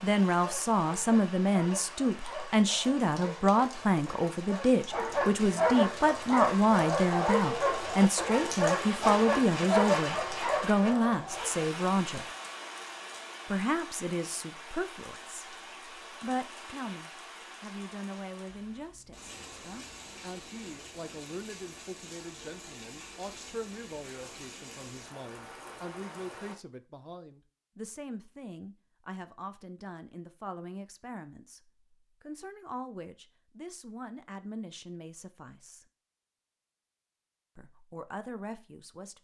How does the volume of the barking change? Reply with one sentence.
The loudness of the barking goes up.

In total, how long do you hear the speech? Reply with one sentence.
The speech can be heard for 36 seconds in total.